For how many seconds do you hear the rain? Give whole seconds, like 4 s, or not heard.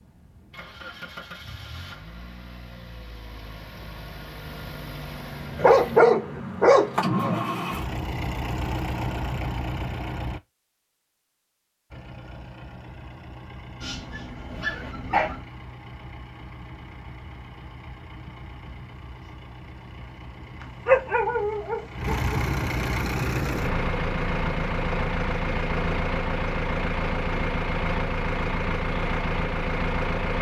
not heard.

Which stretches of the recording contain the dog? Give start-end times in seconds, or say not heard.
5.5-7.4, 13.8-15.4, 20.9-22.4.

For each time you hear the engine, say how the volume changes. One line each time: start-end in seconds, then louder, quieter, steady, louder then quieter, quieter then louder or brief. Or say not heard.
0.0-10.4 louder
11.9-30.3 louder.